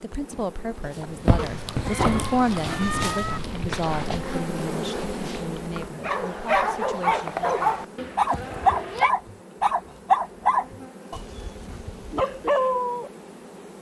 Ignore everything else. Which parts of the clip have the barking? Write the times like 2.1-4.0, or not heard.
0.9-13.1.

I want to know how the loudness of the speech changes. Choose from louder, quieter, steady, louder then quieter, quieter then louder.
louder then quieter.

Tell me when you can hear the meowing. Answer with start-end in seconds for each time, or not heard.
1.4-3.4, 8.0-9.1.